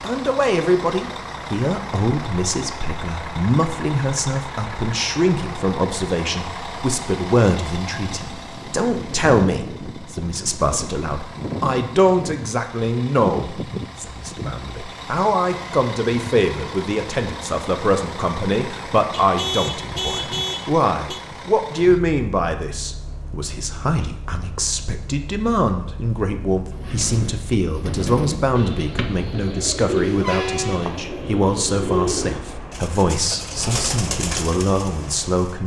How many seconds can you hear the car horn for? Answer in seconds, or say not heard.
2 s.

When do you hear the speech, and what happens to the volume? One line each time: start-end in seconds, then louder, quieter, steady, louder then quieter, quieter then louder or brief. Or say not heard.
0.0-35.6 steady.